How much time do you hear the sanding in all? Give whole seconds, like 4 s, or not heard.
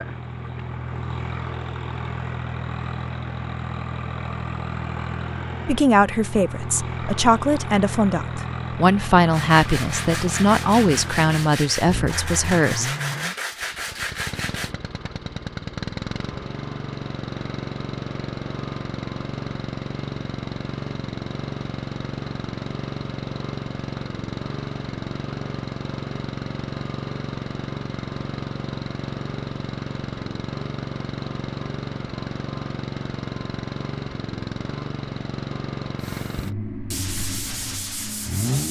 8 s.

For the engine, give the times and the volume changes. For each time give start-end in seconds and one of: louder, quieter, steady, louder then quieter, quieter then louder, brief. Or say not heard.
0.0-38.6 steady.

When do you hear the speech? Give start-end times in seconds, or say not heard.
5.7-12.9.